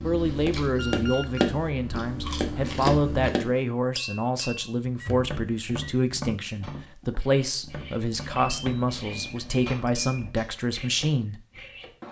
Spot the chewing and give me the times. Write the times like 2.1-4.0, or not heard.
0.0-3.3.